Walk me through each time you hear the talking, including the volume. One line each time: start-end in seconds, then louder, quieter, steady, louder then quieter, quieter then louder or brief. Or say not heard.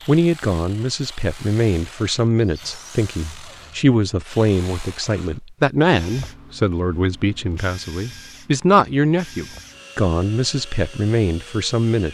0.1-12.0 steady.